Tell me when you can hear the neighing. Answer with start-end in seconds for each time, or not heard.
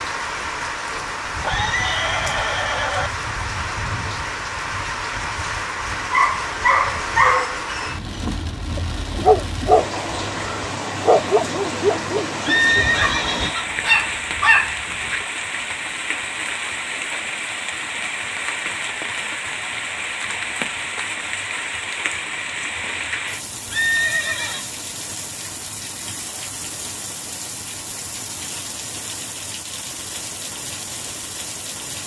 1.4-3.1, 12.4-13.8, 23.7-24.7.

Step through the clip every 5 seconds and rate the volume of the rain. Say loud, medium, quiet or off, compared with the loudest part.
loud, loud, loud, loud, loud, medium, medium.